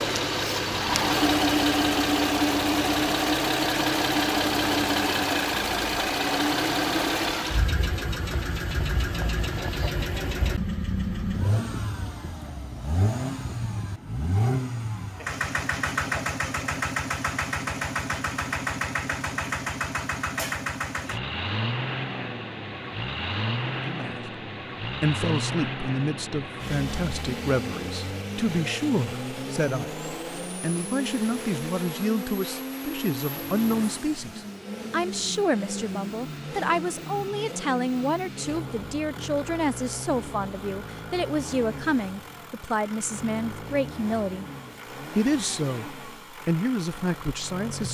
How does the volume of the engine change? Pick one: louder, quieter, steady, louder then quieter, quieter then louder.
quieter.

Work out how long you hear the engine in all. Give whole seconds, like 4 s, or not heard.
48 s.